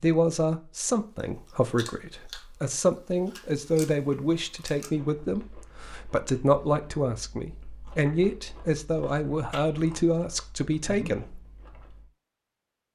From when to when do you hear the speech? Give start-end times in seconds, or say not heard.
0.0-11.4.